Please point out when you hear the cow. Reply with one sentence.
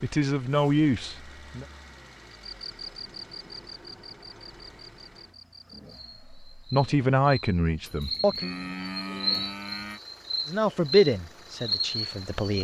The cow can be heard from 7.8 to 10.0 s.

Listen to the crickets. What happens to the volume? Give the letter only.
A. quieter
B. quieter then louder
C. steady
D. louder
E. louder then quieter
B.